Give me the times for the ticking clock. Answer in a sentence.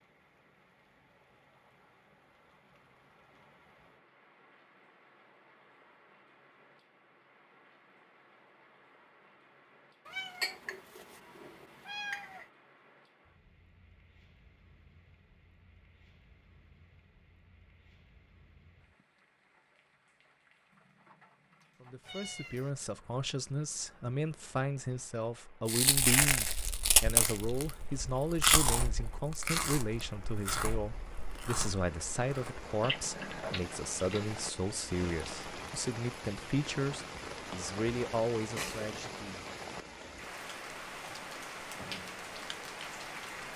You can't hear the ticking clock here.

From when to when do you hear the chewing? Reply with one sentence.
You can hear the chewing from 25.7 to 34.2 s.